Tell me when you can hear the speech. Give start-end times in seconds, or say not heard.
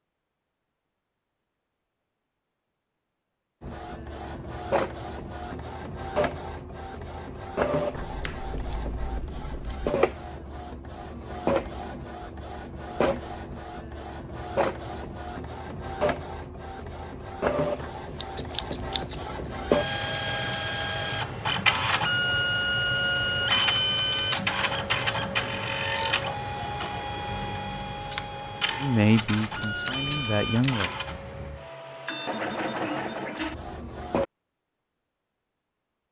28.8-30.9.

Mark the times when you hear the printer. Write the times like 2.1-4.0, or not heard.
3.6-34.2.